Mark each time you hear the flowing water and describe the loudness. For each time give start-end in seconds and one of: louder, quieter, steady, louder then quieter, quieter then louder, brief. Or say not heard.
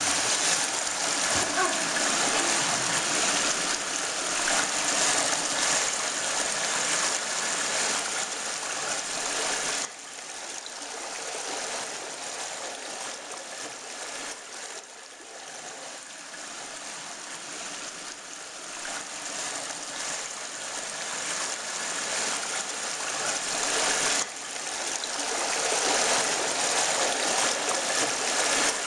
0.0-28.8 quieter then louder.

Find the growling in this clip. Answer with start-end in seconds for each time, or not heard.
1.3-3.0.